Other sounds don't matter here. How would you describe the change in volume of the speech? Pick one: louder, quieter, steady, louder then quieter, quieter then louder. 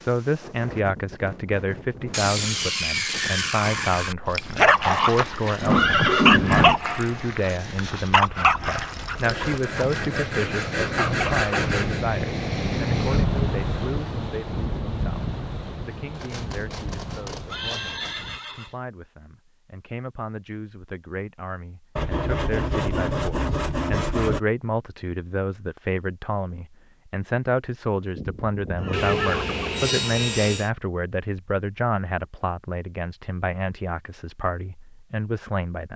quieter then louder.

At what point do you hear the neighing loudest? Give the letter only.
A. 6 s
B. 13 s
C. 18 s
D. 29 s
A.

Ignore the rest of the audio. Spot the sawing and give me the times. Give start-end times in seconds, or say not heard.
2.1-4.2, 9.2-12.1, 16.1-18.1, 21.9-24.4, 28.9-30.7.